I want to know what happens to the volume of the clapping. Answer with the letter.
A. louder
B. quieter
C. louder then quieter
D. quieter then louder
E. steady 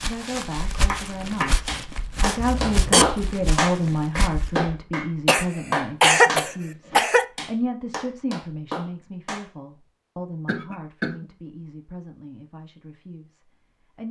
C.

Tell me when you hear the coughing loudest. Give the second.
6 s.